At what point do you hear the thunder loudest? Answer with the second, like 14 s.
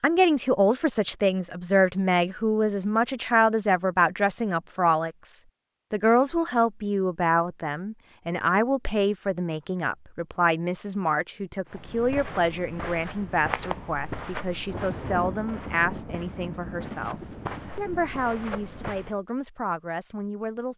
15 s.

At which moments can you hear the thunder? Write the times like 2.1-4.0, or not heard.
14.7-18.1.